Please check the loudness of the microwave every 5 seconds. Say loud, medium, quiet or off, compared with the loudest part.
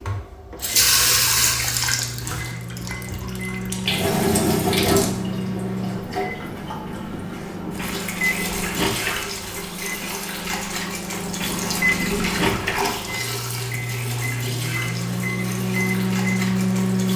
medium, medium, medium, loud.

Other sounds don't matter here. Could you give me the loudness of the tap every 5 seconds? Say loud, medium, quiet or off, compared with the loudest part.
loud, medium, medium, quiet.